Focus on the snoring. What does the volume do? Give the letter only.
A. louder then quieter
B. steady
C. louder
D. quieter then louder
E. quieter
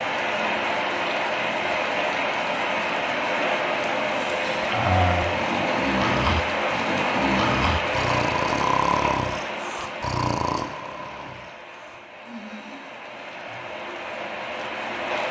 E.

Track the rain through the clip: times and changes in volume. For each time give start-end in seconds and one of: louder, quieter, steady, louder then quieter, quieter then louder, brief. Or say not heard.
0.0-15.2 quieter.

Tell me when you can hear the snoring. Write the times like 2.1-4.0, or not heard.
4.2-13.7.